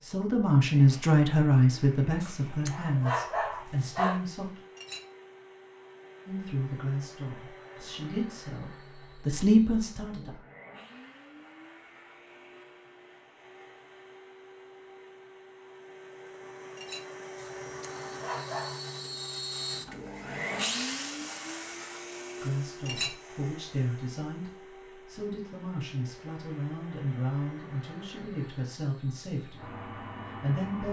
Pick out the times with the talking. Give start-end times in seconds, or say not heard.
0.0-4.6, 6.2-10.4, 22.4-30.8.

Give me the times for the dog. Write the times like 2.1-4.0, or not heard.
2.2-4.2, 17.4-18.8.